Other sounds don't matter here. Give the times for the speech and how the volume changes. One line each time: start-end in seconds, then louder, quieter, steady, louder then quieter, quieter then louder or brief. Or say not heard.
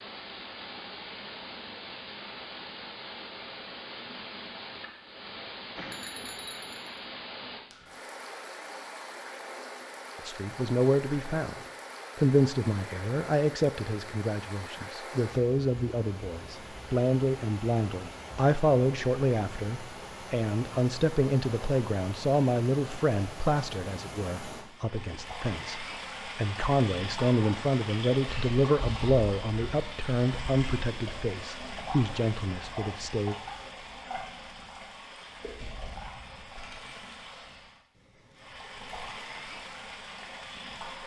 10.2-11.6 brief
12.2-33.4 steady.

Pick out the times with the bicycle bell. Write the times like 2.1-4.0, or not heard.
5.8-7.0.